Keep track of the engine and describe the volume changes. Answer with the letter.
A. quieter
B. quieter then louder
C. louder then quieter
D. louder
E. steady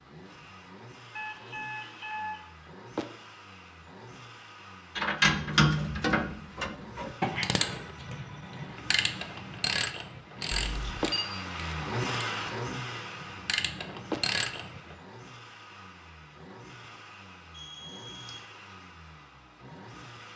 C.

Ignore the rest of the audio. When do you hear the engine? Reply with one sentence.
The engine can be heard from 0.0 to 20.3 s.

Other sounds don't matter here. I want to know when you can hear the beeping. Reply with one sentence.
The beeping can be heard from 1.1 to 2.4 s, from 10.7 to 11.3 s and from 17.5 to 18.4 s.